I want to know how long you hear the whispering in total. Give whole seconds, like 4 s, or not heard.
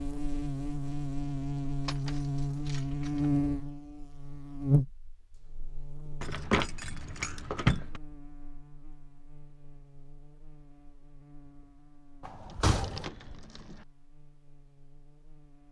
not heard.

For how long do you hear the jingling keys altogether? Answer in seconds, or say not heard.
5 s.